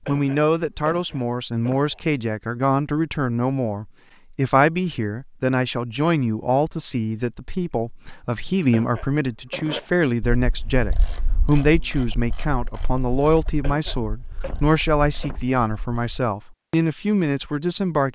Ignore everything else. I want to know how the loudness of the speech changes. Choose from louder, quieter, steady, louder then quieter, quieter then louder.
steady.